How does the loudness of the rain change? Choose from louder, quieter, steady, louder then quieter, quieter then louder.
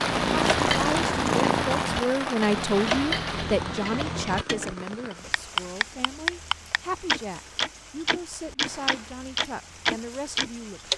quieter.